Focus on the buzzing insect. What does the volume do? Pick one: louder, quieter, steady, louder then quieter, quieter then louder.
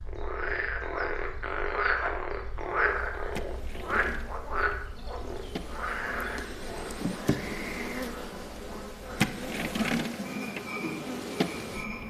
louder.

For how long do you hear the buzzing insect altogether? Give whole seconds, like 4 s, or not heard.
9 s.